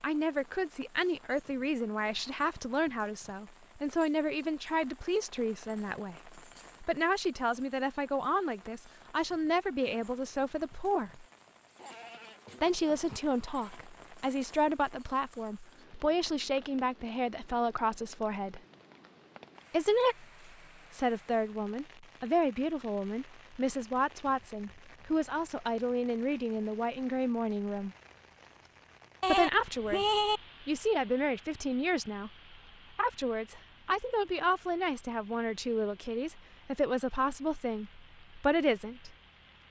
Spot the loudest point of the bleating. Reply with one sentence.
The loudest moment of the bleating is at 30 seconds.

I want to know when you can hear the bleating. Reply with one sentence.
You can hear the bleating from 11.8 to 13.8 s and from 29.2 to 30.4 s.